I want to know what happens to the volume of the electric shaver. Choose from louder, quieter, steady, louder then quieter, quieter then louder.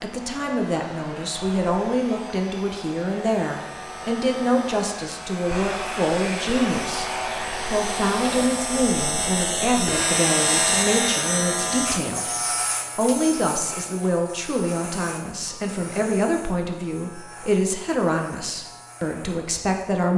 louder then quieter.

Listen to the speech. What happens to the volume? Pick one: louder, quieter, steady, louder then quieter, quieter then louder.
steady.